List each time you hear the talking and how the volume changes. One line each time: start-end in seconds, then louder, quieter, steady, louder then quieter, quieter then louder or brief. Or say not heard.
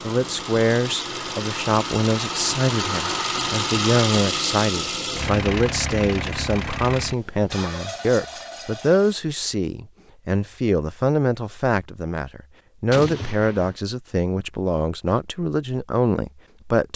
0.0-16.9 steady.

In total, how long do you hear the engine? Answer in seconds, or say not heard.
9 s.